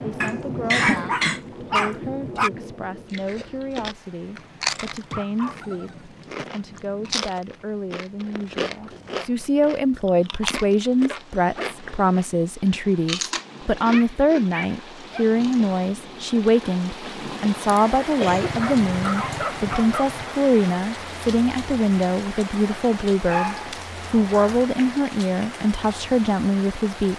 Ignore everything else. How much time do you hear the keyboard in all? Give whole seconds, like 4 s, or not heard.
not heard.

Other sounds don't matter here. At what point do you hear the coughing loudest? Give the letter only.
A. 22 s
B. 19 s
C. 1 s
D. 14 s
C.